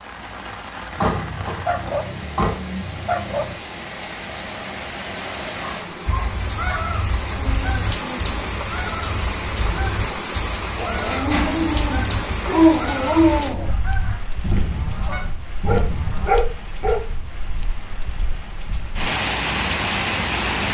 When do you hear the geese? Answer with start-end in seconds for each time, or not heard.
6.0-16.3.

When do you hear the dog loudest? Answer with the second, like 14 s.
13 s.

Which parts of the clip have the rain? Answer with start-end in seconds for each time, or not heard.
0.0-20.6.